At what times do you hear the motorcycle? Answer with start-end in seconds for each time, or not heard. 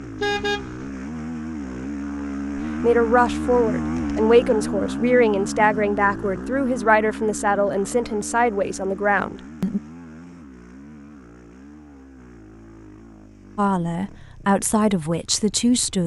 0.0-16.0.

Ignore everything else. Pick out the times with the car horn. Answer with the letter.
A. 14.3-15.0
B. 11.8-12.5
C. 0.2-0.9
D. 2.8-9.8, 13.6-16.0
C.